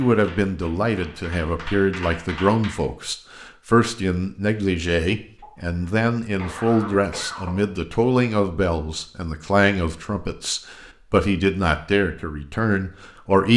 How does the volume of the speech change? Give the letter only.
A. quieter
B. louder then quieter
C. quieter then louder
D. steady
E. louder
D.